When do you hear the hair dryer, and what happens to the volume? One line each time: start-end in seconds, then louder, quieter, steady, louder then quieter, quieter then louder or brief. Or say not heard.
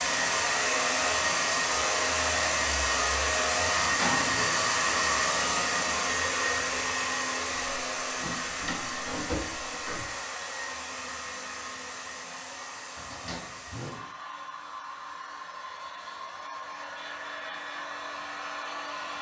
0.0-19.1 quieter.